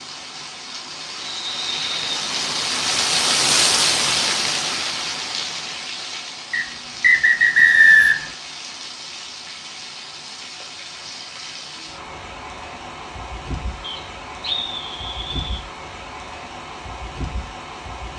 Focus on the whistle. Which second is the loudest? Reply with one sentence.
The volume of the whistle peaks at 8 seconds.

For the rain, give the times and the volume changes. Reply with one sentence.
You can hear the rain from 0.0 to 18.1 s, getting quieter.